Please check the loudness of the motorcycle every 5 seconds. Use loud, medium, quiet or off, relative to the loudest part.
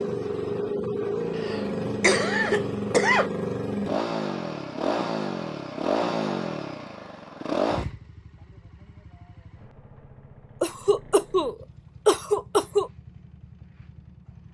loud, loud, quiet.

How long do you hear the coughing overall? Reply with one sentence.
The coughing can be heard for 4 seconds in total.